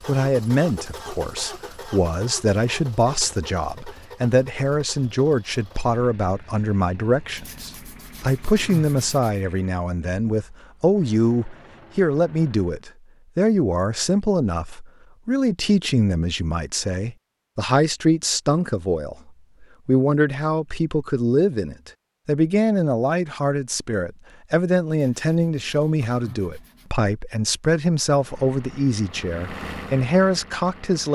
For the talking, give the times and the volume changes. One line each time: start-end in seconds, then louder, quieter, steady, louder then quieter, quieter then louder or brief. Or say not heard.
0.1-31.0 steady.